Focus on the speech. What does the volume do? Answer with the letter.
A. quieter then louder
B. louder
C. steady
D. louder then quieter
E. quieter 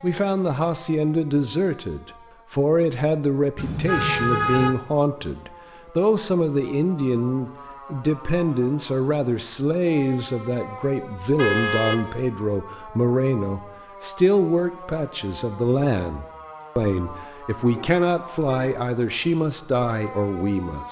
C.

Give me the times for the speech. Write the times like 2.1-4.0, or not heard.
0.0-20.8.